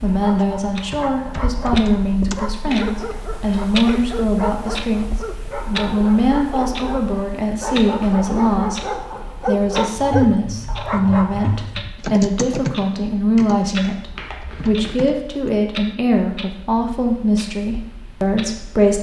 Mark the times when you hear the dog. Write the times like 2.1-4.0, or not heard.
0.1-11.7.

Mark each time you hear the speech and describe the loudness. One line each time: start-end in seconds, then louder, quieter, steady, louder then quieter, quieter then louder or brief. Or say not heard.
0.0-18.9 steady.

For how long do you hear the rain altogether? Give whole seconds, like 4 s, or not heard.
not heard.